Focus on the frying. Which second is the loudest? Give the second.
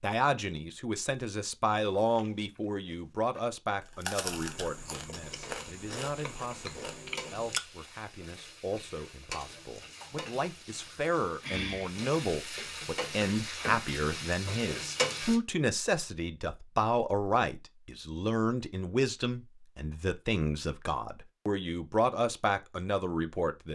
15 s.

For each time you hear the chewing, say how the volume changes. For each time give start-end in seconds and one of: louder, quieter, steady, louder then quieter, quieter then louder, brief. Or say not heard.
1.8-7.6 louder.